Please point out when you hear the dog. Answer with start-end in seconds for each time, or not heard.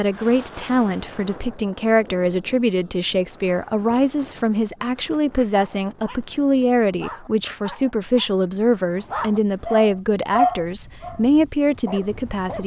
5.5-12.6.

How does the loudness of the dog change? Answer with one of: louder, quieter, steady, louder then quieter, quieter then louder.
louder then quieter.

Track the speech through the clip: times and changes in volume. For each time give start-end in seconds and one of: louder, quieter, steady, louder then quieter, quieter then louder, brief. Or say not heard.
0.0-12.6 steady.